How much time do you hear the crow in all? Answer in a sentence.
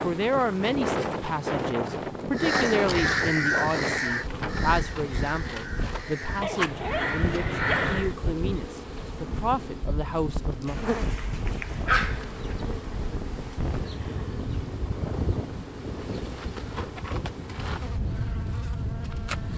The crow can be heard for 6 seconds in total.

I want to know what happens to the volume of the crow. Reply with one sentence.
The loudness of the crow goes down, then up.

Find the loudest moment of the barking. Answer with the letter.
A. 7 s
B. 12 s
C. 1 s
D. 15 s
B.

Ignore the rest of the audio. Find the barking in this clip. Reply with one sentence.
The barking can be heard from 6.2 to 8.1 s and from 10.7 to 12.6 s.